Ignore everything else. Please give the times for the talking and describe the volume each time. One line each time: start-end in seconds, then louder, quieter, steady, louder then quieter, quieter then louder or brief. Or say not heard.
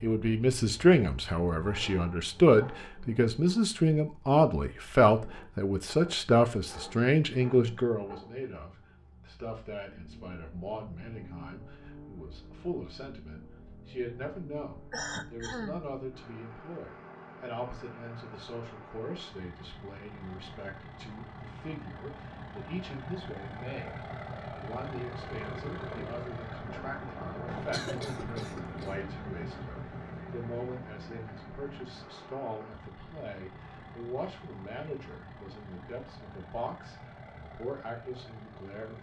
0.0-38.9 quieter.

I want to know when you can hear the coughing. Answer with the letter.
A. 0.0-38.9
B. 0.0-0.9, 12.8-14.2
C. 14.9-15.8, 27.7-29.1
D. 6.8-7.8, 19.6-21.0
C.